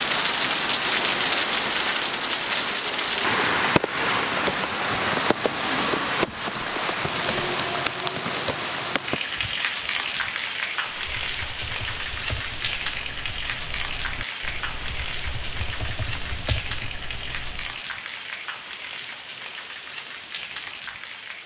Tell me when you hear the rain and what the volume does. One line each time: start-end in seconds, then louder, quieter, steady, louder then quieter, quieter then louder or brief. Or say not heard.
0.0-21.4 quieter.